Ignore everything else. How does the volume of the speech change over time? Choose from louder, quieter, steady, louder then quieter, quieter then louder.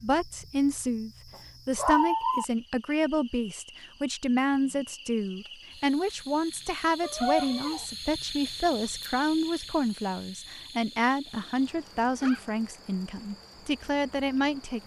steady.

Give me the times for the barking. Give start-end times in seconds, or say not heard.
1.8-2.5, 7.0-7.8, 11.3-12.5.